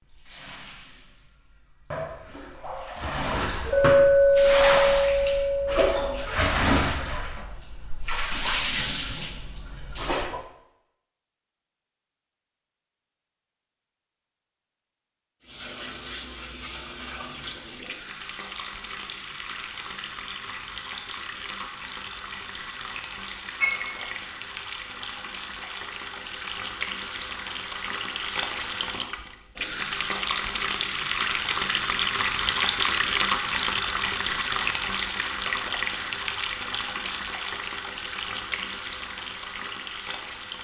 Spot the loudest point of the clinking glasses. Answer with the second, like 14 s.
4 s.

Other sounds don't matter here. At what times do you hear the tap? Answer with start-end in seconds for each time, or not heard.
0.0-10.4, 15.4-40.5.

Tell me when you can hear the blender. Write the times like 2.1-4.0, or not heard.
not heard.